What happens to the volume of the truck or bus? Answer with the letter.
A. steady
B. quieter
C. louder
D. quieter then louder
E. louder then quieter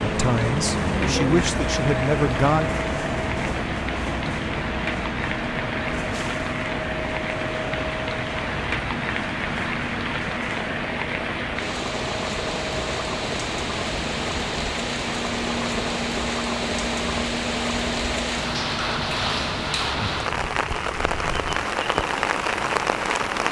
B.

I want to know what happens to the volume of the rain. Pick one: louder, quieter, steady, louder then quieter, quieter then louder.
louder.